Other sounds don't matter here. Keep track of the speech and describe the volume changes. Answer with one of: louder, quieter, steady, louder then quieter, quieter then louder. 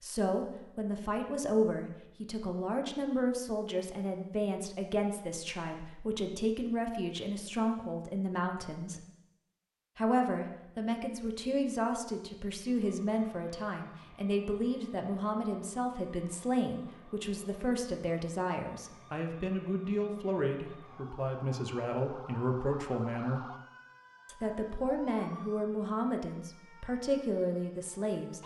steady.